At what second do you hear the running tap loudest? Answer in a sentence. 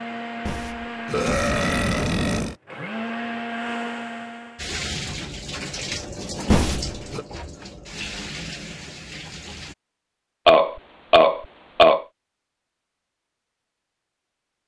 The volume of the running tap peaks at 6 seconds.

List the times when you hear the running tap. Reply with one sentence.
You can hear the running tap from 4.5 to 9.8 s.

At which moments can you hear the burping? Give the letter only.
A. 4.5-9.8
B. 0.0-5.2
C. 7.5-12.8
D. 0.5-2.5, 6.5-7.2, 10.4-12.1
D.